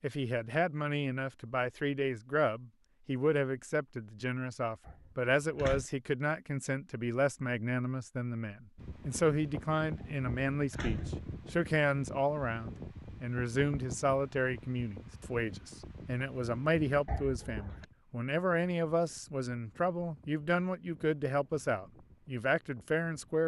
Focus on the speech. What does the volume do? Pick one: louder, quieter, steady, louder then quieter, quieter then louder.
steady.